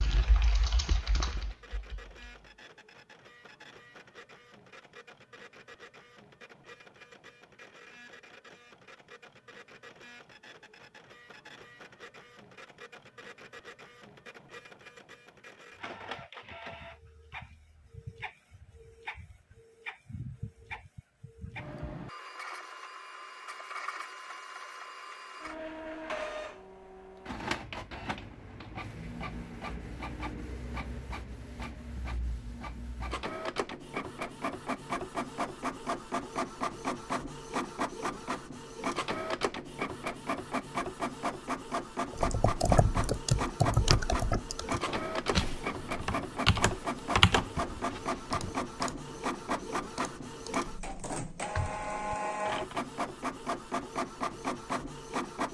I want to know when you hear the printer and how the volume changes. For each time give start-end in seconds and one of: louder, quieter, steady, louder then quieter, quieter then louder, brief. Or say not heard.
0.1-55.4 louder.